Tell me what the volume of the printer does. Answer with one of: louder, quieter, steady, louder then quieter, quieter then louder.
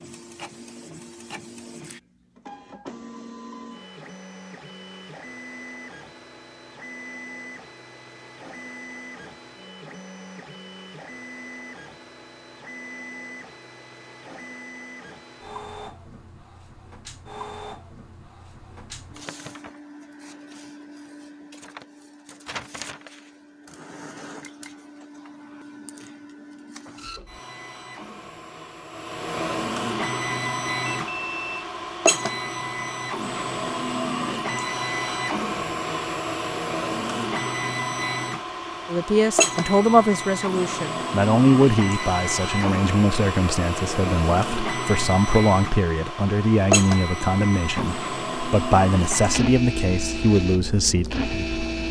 louder.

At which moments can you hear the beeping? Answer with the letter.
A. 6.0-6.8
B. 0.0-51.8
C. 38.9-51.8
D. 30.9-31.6
D.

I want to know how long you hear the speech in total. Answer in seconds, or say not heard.
13 s.